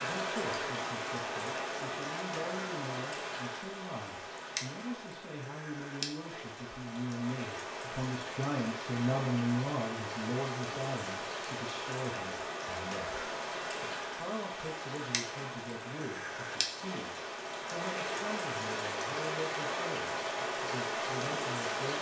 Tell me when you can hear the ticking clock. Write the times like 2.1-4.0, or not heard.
not heard.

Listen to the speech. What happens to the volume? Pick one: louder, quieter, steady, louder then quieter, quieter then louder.
louder then quieter.